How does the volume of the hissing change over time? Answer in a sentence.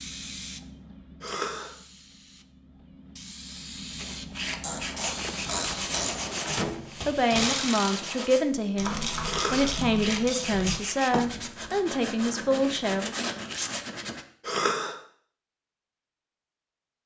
The volume of the hissing goes down, then up.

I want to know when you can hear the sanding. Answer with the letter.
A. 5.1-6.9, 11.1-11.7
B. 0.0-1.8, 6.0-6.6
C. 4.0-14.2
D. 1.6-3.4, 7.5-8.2
C.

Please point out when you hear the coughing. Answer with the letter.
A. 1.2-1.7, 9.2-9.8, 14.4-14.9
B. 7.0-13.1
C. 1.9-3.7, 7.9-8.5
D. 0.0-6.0
A.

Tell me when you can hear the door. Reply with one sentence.
The door can be heard from 5.1 to 6.9 s and from 11.1 to 11.7 s.